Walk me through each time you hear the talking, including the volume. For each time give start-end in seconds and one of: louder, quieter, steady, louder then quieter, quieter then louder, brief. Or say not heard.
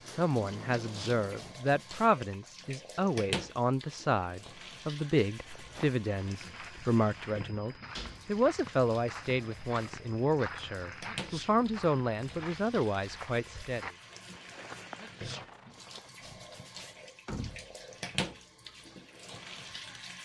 0.0-13.9 steady.